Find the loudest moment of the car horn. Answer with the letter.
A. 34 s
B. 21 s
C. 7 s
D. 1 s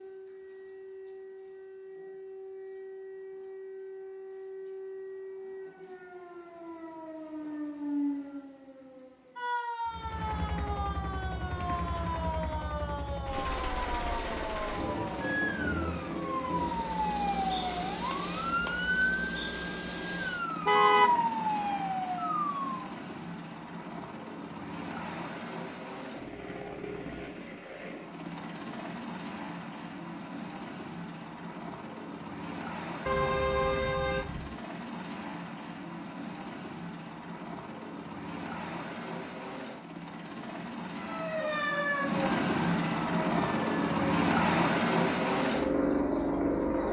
B.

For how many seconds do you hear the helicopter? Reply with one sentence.
The helicopter can be heard for 37 seconds in total.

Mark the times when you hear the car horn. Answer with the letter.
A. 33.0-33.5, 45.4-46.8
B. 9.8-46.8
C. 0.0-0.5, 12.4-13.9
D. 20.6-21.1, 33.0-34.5
D.